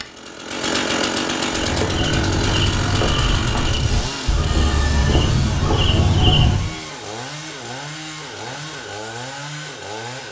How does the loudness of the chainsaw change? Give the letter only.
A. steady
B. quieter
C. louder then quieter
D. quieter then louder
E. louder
B.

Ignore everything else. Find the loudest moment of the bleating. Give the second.
6 s.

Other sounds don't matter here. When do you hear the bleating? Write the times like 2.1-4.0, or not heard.
1.4-6.7.